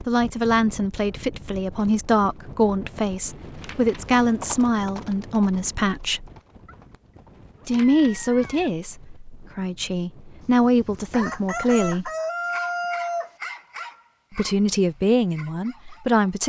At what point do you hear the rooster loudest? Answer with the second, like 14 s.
13 s.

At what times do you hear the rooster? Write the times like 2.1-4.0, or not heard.
10.4-13.3.